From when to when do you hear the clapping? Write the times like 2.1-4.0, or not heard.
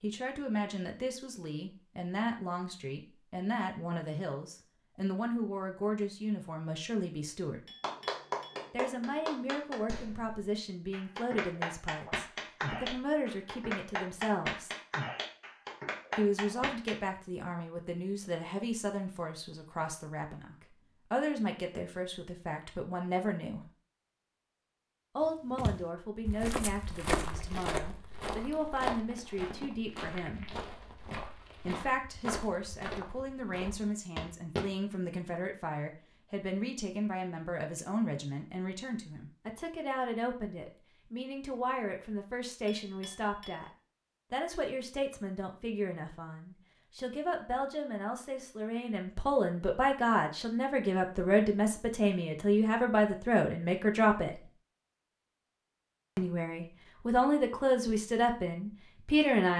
7.8-16.9.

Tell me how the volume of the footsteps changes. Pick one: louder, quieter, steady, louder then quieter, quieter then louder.
quieter.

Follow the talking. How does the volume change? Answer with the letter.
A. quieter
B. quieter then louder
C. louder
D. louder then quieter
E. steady
C.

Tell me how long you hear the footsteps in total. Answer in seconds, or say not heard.
9 s.